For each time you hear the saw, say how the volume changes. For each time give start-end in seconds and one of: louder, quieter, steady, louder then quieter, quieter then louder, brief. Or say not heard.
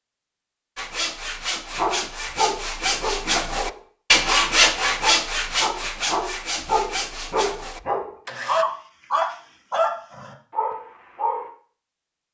0.8-8.7 louder then quieter.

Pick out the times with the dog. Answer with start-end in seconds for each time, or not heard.
1.8-11.5.